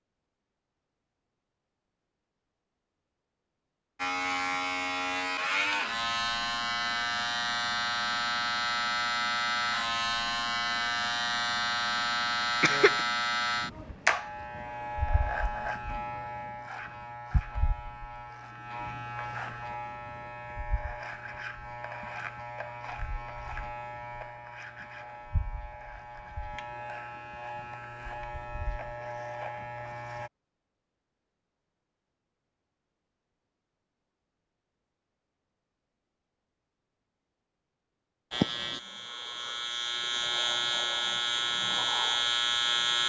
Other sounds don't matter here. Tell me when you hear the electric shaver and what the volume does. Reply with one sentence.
You can hear the electric shaver from 4.0 to 30.3 s, getting quieter; and from 38.3 to 43.0 s, getting louder.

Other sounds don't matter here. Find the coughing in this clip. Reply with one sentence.
The coughing can be heard from 12.4 to 13.1 s.